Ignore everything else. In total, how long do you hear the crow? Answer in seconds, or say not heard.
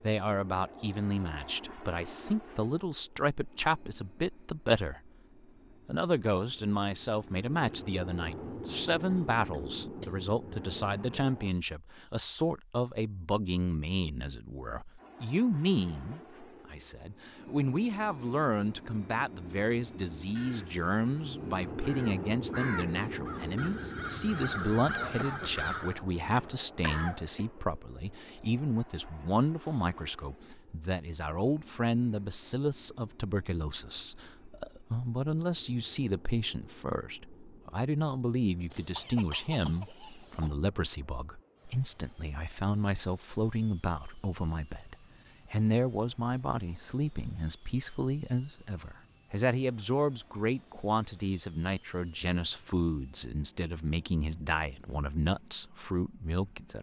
6 s.